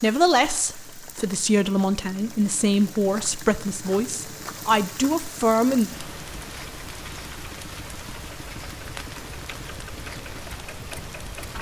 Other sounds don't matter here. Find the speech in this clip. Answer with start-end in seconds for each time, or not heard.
0.0-5.9.